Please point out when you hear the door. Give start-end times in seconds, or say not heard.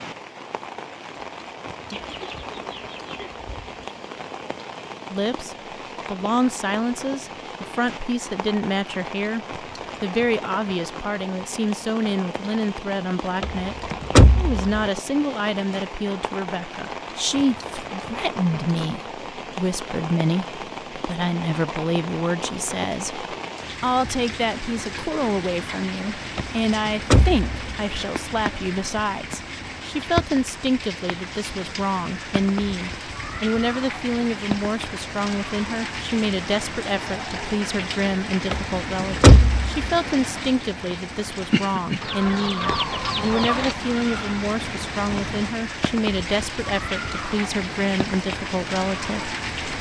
13.4-14.8, 26.4-27.6, 38.5-40.0.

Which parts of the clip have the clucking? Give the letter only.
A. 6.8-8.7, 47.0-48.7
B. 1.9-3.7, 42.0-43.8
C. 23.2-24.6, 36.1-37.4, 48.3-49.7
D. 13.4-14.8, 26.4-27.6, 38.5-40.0
B.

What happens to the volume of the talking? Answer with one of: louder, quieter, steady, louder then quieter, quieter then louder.
steady.